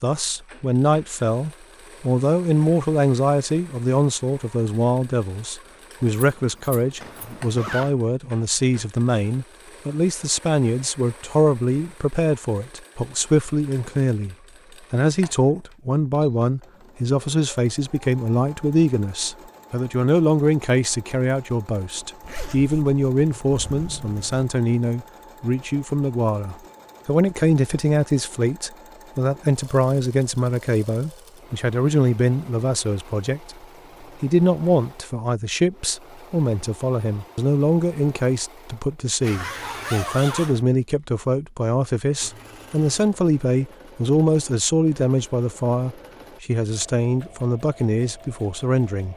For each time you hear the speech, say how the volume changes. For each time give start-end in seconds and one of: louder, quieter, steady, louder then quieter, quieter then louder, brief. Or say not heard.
0.0-49.1 steady.